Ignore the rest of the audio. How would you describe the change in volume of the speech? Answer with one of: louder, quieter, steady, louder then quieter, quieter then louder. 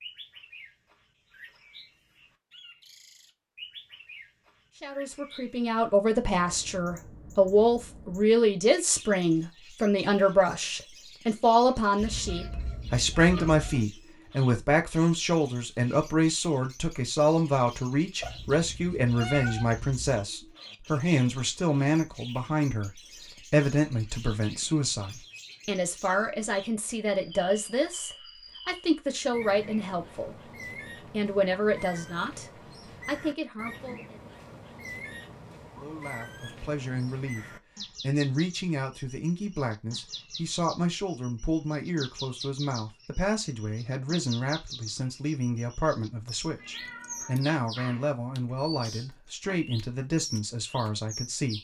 quieter.